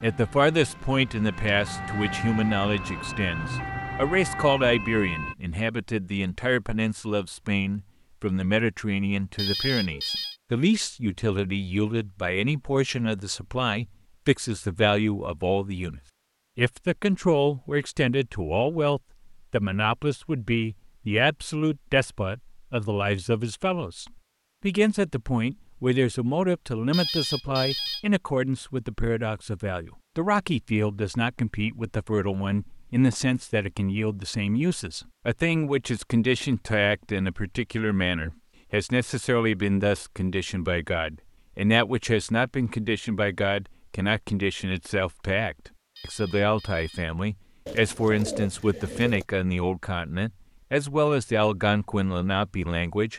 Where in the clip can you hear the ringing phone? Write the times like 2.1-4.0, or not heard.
9.3-10.3, 26.9-28.1, 46.0-47.1.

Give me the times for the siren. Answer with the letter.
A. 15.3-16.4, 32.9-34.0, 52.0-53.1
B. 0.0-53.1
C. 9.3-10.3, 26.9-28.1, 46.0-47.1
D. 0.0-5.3
D.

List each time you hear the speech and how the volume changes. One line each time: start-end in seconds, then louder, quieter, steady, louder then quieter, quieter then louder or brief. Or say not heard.
0.0-53.1 steady.